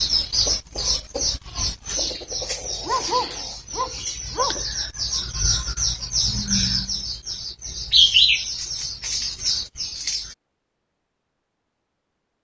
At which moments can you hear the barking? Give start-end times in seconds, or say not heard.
2.9-4.6.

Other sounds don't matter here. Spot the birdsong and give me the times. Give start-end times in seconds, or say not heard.
0.0-10.3.